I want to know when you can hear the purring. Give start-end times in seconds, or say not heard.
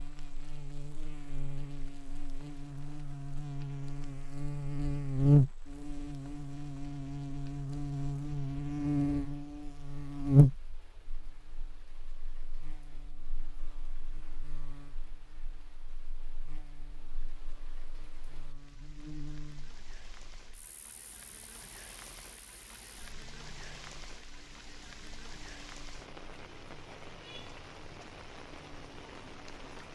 not heard.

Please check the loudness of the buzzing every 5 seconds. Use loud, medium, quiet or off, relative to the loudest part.
medium, loud, loud, quiet, quiet, quiet.